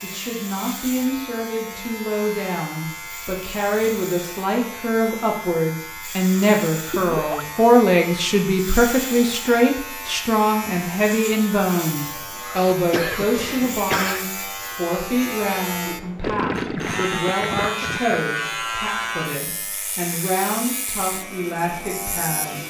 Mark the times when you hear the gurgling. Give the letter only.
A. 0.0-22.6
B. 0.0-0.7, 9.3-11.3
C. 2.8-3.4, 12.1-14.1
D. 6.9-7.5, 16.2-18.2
D.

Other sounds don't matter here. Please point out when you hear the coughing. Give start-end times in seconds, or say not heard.
12.6-14.2.